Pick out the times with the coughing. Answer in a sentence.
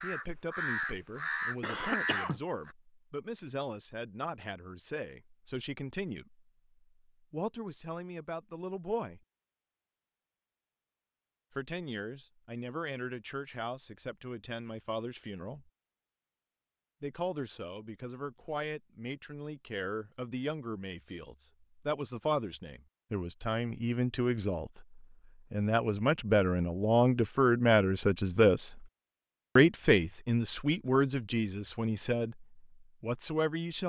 The coughing can be heard from 1.6 to 2.4 s.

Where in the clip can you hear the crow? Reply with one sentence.
You can hear the crow from 0.0 to 2.8 s.